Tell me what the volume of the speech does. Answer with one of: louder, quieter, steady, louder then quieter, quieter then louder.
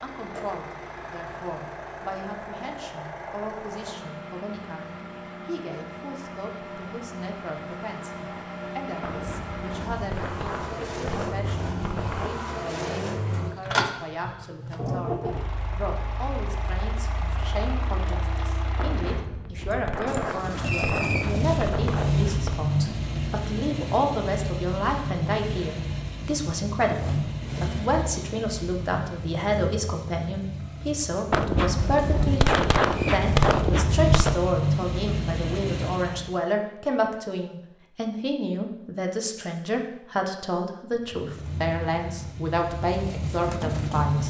louder.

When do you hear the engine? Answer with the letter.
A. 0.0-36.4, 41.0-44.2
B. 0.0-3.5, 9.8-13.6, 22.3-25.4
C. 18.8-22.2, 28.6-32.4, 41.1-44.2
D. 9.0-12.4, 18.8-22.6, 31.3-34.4
A.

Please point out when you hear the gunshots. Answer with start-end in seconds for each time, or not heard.
9.0-12.4, 18.8-22.6, 31.3-34.4.